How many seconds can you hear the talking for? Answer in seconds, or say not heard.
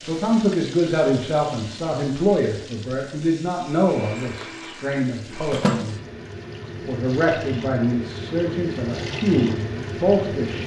10 s.